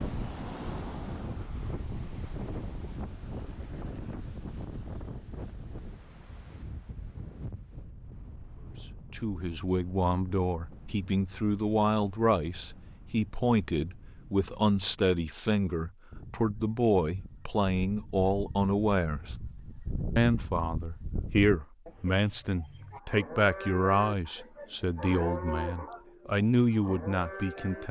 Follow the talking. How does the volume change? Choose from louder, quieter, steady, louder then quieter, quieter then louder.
steady.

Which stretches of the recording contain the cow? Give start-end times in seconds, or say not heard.
22.9-27.8.